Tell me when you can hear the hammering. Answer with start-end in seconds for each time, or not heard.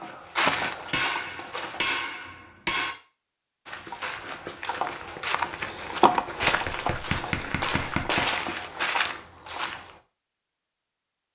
0.9-3.0, 6.5-8.2.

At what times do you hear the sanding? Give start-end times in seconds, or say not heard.
not heard.